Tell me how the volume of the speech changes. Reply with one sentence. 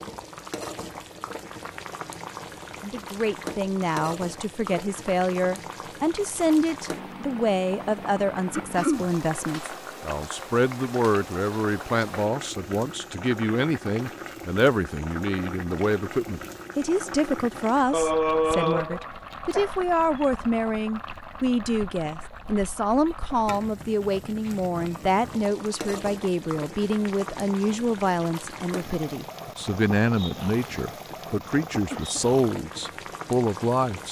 The volume of the speech stays about the same.